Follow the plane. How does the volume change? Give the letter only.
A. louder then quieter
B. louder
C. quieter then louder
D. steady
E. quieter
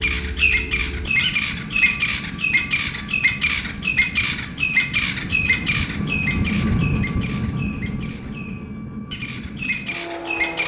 A.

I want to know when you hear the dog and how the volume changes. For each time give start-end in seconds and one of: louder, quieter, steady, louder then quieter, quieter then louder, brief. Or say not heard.
not heard.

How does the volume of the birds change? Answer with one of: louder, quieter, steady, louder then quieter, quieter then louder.
quieter.